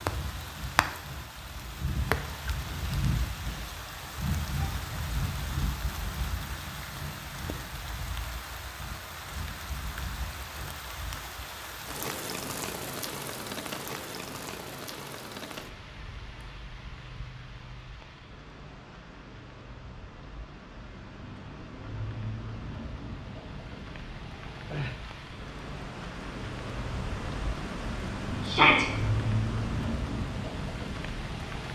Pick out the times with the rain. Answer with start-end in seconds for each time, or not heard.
0.0-31.7.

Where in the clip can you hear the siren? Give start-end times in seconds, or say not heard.
not heard.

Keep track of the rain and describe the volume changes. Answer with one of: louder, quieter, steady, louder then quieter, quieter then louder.
quieter then louder.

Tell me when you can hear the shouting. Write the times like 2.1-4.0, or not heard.
28.4-28.9.